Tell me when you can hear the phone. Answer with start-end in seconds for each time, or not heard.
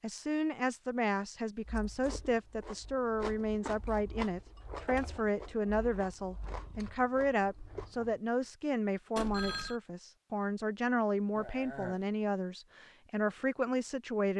9.2-9.8.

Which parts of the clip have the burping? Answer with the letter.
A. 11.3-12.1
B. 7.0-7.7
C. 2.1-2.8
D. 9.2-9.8
A.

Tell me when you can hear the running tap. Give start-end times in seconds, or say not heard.
not heard.